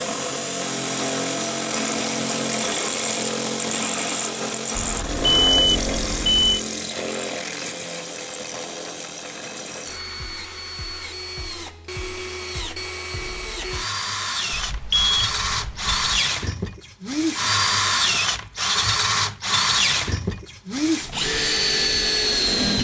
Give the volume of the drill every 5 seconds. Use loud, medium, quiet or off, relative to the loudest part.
loud, medium, medium, loud, loud.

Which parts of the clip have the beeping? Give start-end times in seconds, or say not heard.
4.8-6.6, 14.5-16.1.